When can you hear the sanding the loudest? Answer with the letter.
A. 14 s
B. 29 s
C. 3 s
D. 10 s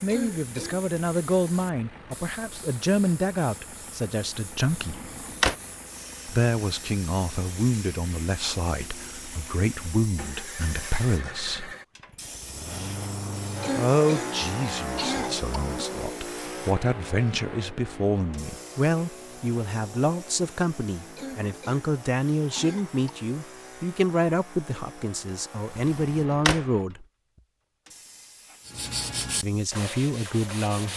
B.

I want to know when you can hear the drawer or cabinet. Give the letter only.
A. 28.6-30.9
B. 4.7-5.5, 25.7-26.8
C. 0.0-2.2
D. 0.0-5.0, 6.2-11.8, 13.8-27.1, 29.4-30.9
B.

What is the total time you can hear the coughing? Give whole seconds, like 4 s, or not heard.
5 s.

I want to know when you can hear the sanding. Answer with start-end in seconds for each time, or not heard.
28.6-30.9.